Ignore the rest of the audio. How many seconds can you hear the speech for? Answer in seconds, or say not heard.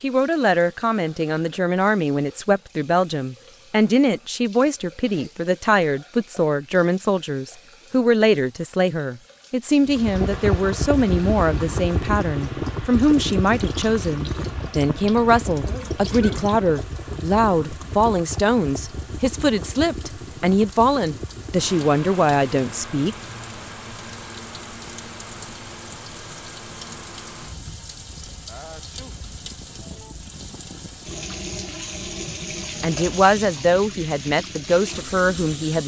26 s.